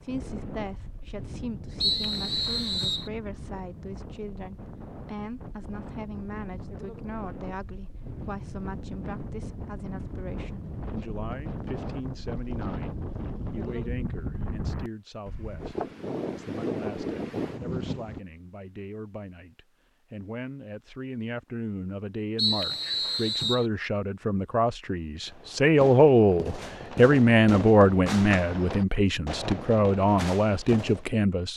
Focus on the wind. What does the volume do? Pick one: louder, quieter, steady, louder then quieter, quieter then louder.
louder.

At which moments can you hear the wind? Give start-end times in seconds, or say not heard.
0.0-18.2.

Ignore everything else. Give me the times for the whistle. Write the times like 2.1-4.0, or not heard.
1.8-3.1, 22.4-23.6.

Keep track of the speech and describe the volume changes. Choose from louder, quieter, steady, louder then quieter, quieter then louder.
louder.